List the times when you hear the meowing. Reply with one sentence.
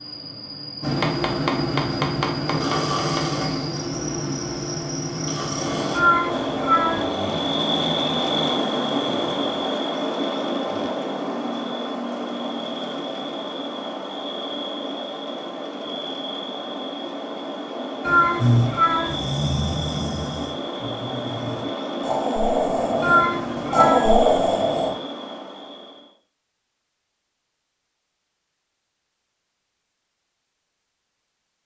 The meowing can be heard from 6.0 to 7.0 s, from 18.1 to 19.1 s and from 23.0 to 24.1 s.